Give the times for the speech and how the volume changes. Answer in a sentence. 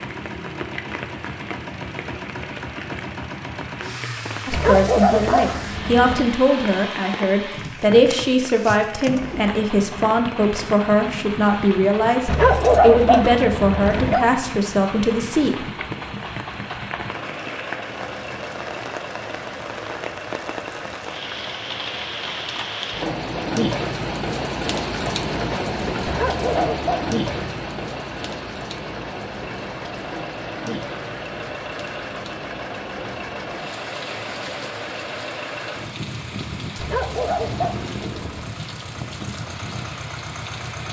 You can hear the speech from 4.5 to 15.7 s, at a steady volume.